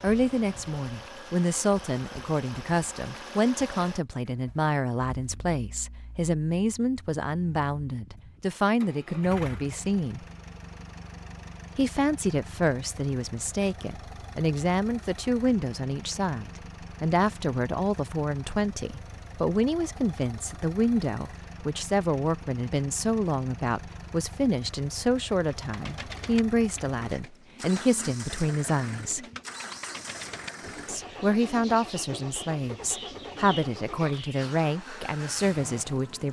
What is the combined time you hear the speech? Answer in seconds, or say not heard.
33 s.